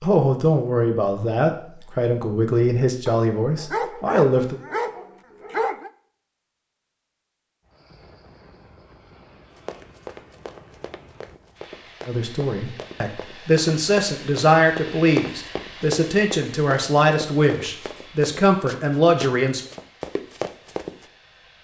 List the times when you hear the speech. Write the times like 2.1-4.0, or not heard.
0.0-4.6, 12.1-19.6.